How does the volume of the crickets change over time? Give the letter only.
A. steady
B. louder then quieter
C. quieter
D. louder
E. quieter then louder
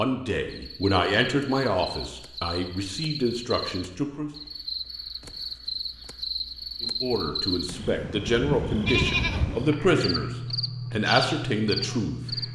D.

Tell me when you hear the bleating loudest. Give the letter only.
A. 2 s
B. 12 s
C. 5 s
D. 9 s
D.